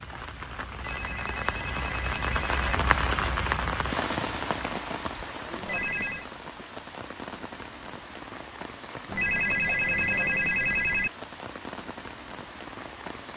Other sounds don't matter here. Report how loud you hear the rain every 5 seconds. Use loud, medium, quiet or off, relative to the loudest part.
loud, medium, medium.